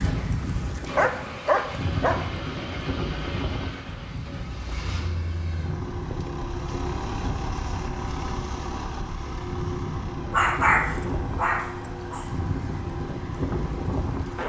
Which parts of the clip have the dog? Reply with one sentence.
The dog can be heard from 0.9 to 2.9 s and from 10.3 to 12.3 s.